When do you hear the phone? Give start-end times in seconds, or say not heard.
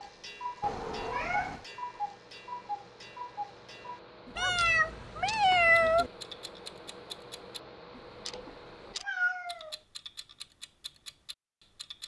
not heard.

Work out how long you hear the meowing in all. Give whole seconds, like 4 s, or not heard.
4 s.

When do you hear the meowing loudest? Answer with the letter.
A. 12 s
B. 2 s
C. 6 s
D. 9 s
C.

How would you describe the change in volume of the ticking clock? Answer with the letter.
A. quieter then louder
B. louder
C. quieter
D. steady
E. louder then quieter
C.